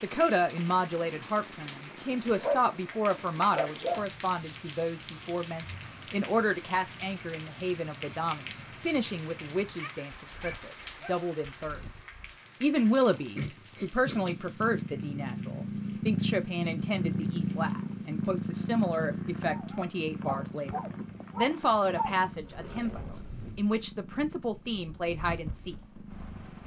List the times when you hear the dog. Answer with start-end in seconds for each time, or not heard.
2.4-4.0, 9.7-11.2, 19.4-22.2.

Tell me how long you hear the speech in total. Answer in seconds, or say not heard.
25 s.